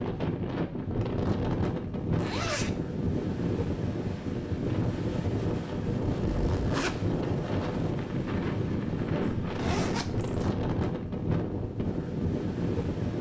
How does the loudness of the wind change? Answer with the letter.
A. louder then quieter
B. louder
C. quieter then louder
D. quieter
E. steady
E.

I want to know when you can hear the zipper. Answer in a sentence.
You can hear the zipper from 2.1 to 2.7 s, from 6.1 to 7.0 s and from 9.4 to 10.5 s.